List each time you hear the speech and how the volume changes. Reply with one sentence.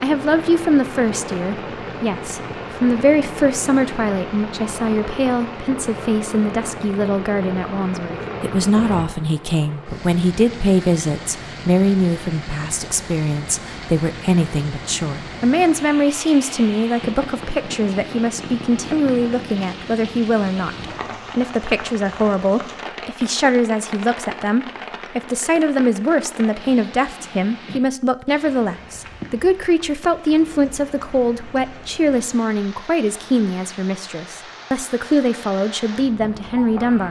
The speech can be heard from 0.0 to 37.0 s, at a steady volume.